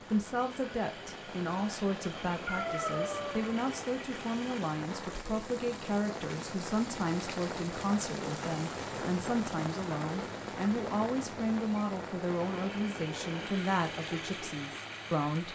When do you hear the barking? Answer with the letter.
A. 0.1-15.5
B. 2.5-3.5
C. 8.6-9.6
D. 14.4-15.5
B.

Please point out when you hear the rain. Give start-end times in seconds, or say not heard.
0.0-15.5.